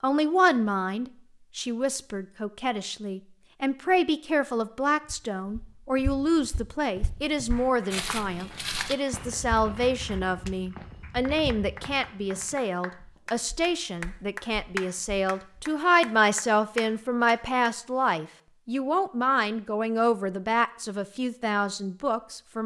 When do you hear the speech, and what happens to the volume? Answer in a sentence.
The speech can be heard from 0.0 to 22.6 s, at a steady volume.